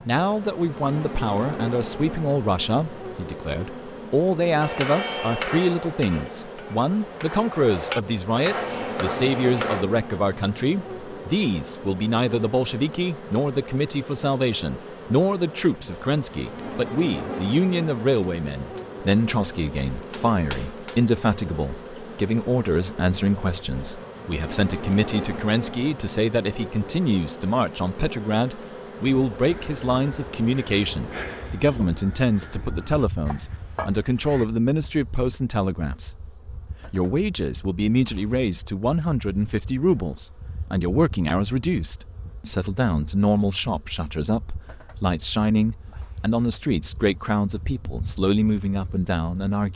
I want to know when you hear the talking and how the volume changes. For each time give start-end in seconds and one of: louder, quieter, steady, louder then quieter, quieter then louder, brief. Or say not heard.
0.1-49.7 steady.